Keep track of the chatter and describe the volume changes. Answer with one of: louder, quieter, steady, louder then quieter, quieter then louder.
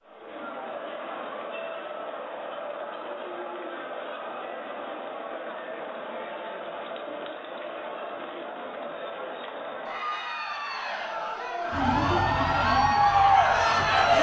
louder.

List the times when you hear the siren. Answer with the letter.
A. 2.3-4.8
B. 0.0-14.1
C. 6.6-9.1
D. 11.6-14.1
D.